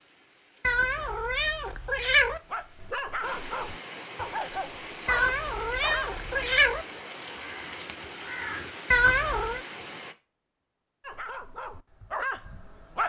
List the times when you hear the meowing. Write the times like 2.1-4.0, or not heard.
0.6-2.4, 5.0-6.8, 8.9-9.6.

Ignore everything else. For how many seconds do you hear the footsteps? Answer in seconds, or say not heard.
not heard.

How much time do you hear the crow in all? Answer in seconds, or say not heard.
2 s.